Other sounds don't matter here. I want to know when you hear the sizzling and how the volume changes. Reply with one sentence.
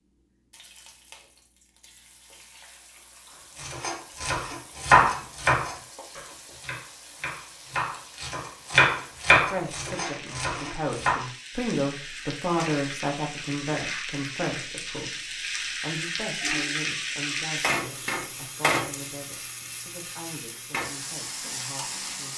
You can hear the sizzling from 0.0 to 22.3 s, getting louder.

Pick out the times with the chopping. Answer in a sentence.
You can hear the chopping from 3.5 to 11.2 s.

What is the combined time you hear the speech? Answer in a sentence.
The speech can be heard for 12 seconds in total.